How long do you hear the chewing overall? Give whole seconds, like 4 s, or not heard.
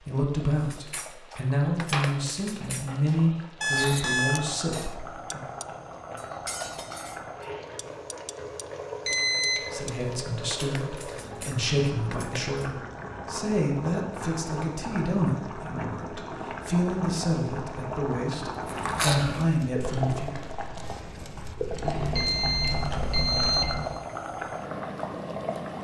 5 s.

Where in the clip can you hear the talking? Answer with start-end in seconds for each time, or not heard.
0.0-5.4, 9.7-20.3.